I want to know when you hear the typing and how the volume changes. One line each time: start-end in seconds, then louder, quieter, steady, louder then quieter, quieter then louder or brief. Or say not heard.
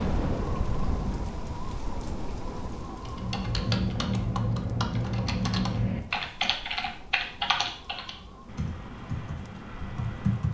3.0-10.5 quieter.